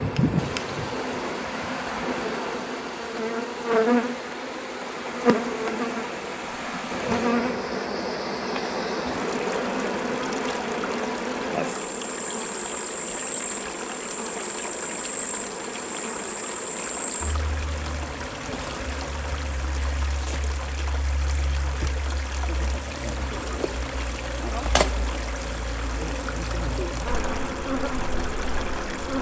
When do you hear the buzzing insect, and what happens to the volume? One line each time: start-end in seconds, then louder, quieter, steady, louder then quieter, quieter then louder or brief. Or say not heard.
0.0-29.1 quieter then louder.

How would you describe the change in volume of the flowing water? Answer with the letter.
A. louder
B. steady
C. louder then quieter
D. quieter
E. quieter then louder
B.